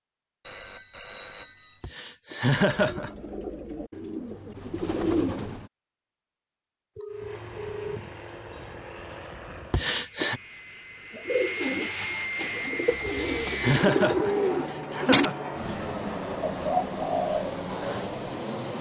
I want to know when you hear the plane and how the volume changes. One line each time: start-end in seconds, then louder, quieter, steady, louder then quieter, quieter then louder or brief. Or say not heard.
7.0-18.7 louder.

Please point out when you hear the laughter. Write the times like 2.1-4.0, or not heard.
1.8-3.1, 9.7-10.4, 13.1-15.3.